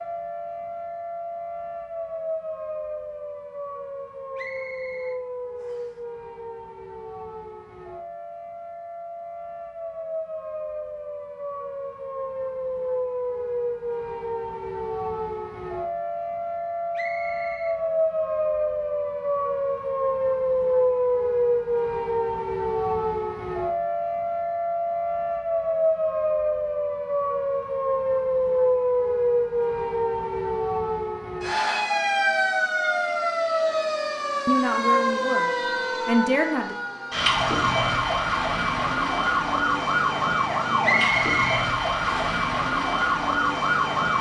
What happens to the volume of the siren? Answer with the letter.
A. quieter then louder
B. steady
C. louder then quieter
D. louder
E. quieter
D.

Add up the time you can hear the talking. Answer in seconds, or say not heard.
2 s.